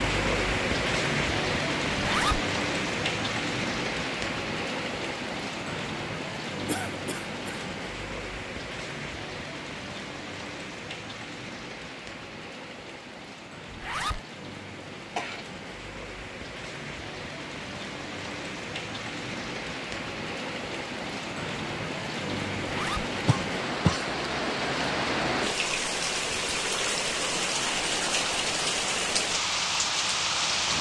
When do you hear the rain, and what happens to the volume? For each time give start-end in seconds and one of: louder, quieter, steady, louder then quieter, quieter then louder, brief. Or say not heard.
0.0-30.7 quieter then louder.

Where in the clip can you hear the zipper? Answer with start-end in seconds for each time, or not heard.
1.9-2.5, 13.7-14.2, 22.6-23.1.